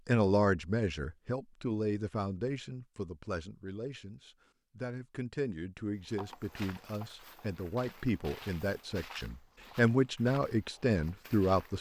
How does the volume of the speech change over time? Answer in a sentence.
The loudness of the speech goes down, then up.